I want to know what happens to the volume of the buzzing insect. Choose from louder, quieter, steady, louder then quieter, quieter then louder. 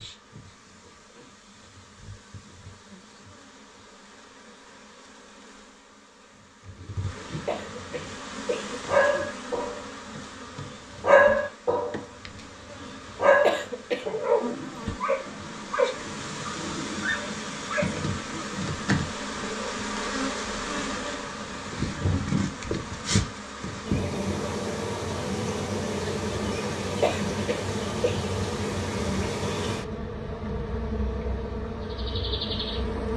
louder.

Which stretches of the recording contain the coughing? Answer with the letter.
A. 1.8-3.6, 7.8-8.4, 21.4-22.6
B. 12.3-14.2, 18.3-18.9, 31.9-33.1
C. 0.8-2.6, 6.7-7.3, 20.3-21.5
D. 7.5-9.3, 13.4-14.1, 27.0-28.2
D.